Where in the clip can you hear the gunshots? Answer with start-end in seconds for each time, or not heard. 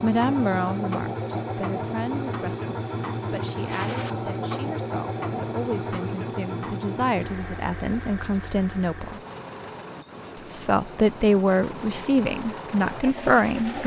3.6-4.2.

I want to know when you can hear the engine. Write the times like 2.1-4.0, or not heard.
0.0-13.8.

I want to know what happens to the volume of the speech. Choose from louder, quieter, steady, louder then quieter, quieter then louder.
quieter then louder.